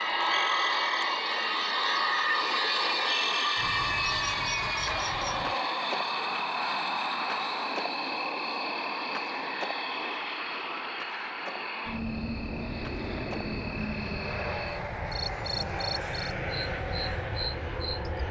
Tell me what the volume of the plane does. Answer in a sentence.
The loudness of the plane goes down.